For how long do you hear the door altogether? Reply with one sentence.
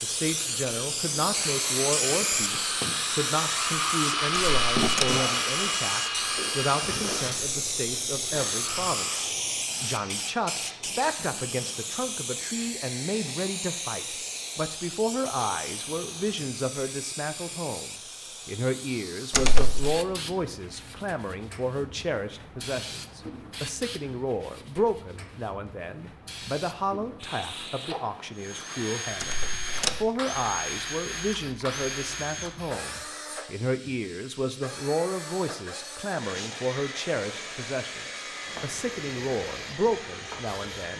The door can be heard for 2 seconds in total.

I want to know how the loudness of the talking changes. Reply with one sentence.
The volume of the talking stays about the same.